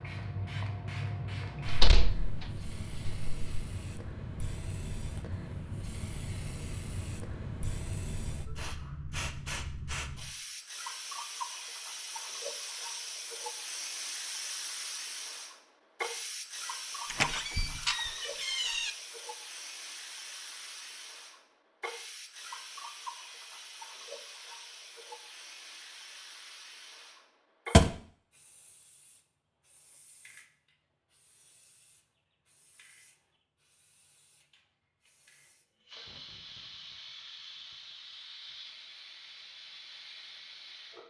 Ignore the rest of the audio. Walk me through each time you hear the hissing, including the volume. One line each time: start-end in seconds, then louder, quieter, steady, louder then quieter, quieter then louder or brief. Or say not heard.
0.0-41.0 quieter.